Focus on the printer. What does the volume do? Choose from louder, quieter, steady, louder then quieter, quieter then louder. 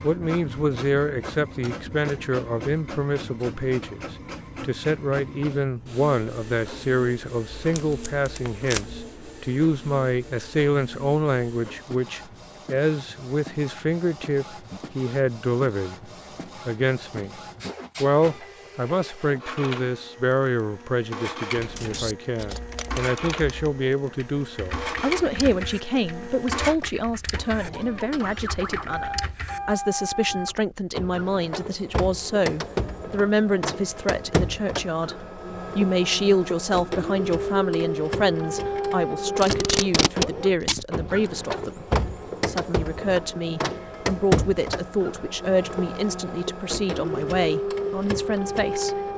louder.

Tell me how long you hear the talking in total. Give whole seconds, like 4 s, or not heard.
48 s.